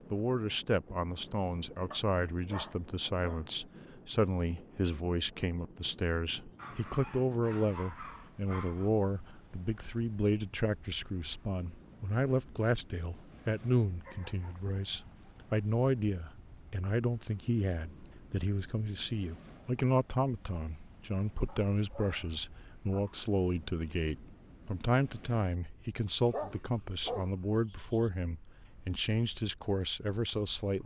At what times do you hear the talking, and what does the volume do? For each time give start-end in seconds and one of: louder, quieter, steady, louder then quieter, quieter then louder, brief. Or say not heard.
0.1-30.8 steady.